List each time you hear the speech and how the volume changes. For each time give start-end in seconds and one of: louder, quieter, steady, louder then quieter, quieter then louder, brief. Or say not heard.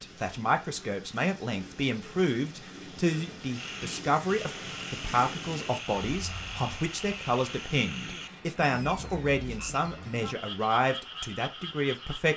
0.0-12.3 steady.